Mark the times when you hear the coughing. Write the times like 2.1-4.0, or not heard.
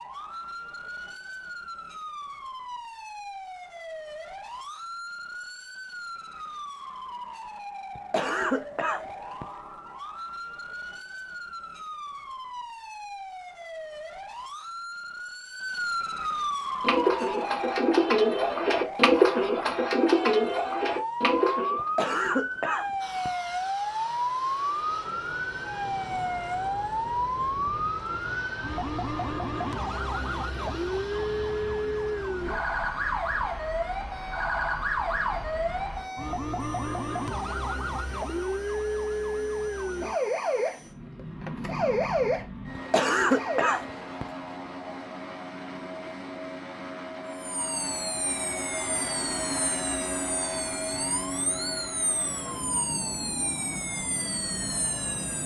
8.0-9.4, 21.8-23.3, 42.8-44.2.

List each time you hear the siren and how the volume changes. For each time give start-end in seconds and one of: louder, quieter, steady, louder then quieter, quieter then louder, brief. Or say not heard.
0.0-43.8 louder
47.3-55.4 steady.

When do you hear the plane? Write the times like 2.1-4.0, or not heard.
23.0-55.4.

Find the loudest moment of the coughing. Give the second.
43 s.